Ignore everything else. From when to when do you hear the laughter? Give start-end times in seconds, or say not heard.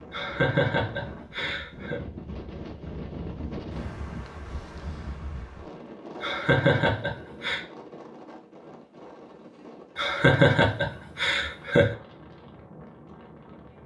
0.1-2.0, 6.2-7.6, 9.9-11.9.